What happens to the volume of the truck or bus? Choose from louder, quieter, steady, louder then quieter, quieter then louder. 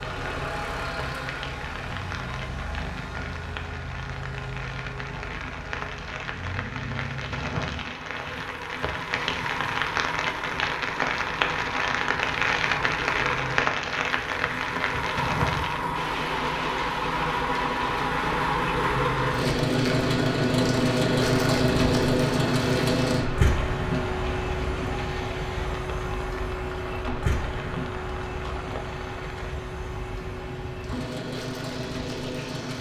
louder then quieter.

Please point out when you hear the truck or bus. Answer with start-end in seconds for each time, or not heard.
0.0-32.7.